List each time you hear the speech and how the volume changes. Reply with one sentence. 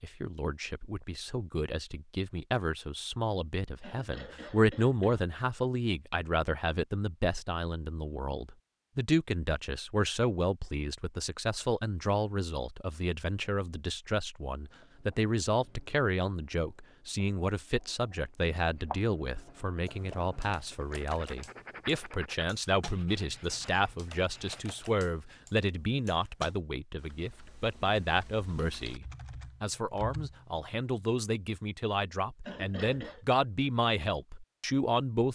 You can hear the speech from 0.0 to 35.3 s, at a steady volume.